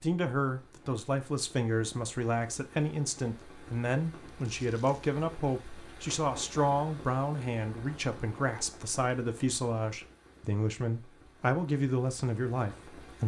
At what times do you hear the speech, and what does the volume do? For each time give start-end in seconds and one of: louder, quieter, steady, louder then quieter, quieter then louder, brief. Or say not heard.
0.0-13.2 steady.